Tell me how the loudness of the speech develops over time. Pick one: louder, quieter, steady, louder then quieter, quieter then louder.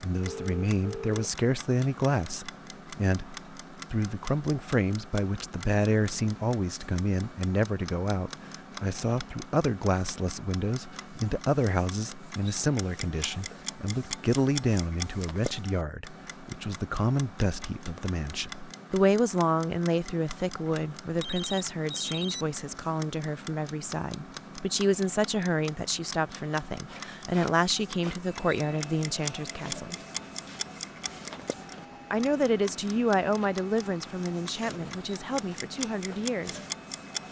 steady.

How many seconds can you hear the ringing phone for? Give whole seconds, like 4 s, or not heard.
2 s.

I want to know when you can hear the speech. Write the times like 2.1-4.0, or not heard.
0.0-30.0, 32.1-36.6.